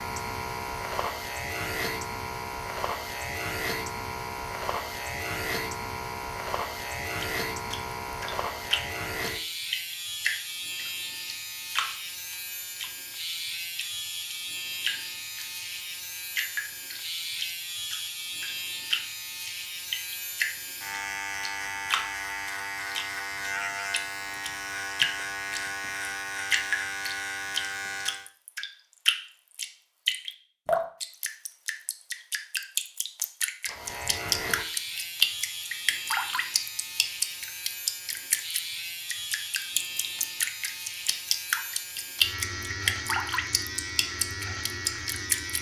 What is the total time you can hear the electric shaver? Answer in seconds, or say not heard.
40 s.